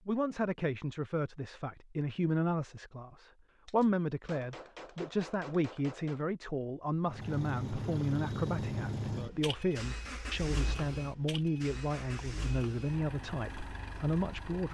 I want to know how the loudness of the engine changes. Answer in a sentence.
The loudness of the engine goes down.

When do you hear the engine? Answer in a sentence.
The engine can be heard from 7.0 to 14.6 s.